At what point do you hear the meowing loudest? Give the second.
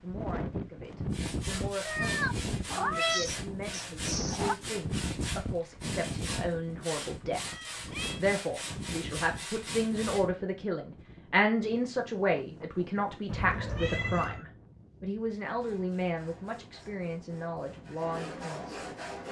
3 s.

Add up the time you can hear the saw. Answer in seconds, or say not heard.
13 s.